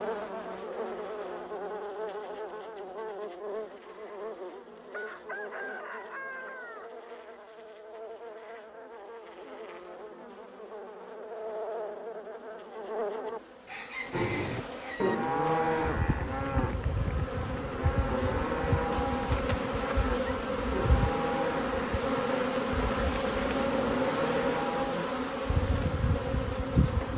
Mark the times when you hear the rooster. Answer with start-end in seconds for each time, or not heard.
4.9-6.9, 13.7-15.2.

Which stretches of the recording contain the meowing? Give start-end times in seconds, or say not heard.
not heard.